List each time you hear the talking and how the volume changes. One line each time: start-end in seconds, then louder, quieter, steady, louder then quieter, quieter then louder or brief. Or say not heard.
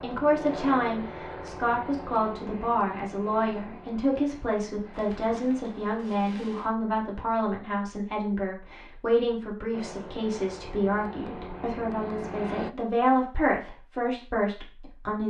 0.0-15.2 steady.